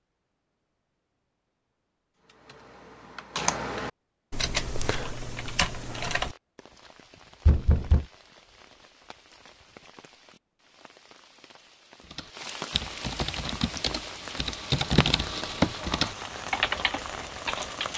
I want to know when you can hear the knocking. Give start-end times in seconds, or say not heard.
7.5-8.1.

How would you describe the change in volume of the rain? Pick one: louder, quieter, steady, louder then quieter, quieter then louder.
louder.